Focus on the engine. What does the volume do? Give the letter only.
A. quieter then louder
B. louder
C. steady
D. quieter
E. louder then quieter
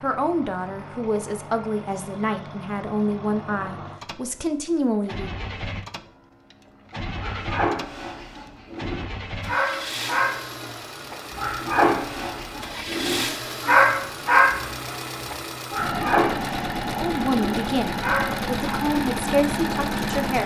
B.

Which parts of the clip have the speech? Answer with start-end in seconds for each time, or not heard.
0.0-5.3, 16.9-20.4.